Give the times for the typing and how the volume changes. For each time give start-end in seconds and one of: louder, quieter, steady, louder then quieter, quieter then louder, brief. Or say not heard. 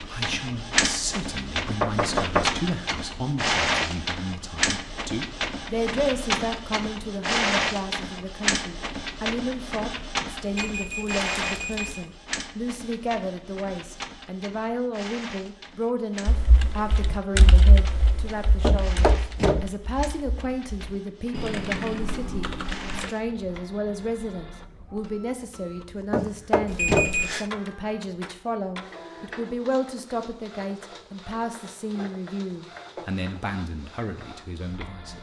16.2-23.1 quieter then louder.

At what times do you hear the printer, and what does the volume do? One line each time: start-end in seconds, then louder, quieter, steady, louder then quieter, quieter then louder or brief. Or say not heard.
0.0-35.1 quieter.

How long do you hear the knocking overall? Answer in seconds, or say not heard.
3 s.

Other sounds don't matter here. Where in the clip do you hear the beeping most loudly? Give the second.
27 s.